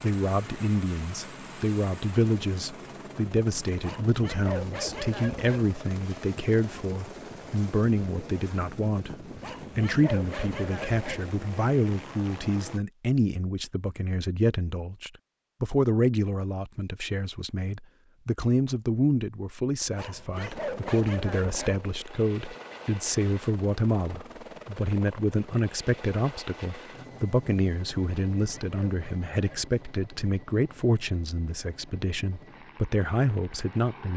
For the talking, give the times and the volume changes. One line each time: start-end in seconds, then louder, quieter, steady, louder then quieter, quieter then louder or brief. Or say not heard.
0.0-34.1 steady.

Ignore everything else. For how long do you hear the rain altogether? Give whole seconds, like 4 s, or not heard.
not heard.